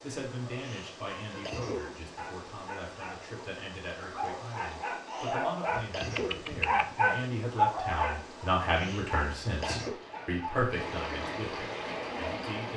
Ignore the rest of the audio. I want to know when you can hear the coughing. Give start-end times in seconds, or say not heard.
0.6-1.9, 5.0-6.8, 8.8-10.0.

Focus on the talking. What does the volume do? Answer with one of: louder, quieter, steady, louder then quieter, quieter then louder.
louder.